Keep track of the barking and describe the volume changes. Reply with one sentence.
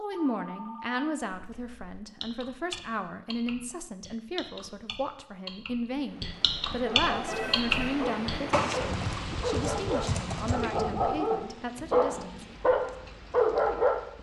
The loudness of the barking goes up.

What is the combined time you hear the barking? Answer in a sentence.
The barking can be heard for 7 seconds in total.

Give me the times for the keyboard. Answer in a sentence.
You can hear the keyboard from 1.3 to 10.7 s.